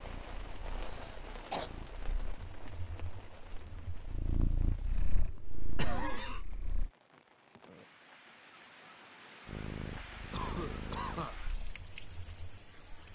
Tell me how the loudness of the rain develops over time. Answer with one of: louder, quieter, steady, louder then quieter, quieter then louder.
quieter then louder.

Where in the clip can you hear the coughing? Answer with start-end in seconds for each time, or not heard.
0.8-1.7, 5.8-6.5, 10.3-11.4.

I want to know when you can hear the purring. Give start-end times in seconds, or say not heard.
0.0-6.9, 9.4-13.1.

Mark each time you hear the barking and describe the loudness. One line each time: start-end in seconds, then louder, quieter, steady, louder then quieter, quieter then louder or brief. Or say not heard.
not heard.